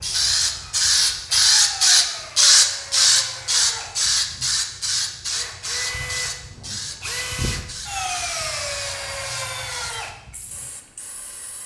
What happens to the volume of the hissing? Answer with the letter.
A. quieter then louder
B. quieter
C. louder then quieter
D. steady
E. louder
B.